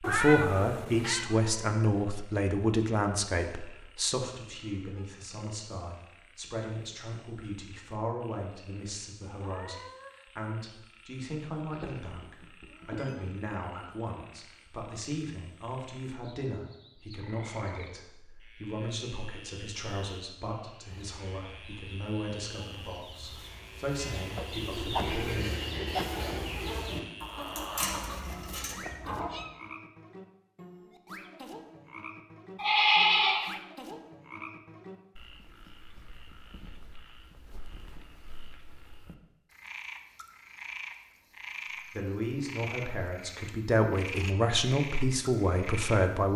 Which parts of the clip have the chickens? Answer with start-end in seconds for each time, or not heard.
20.9-29.3.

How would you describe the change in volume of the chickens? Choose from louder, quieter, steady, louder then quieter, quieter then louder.
louder.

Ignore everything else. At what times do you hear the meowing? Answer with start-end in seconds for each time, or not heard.
0.0-1.3, 27.9-29.6.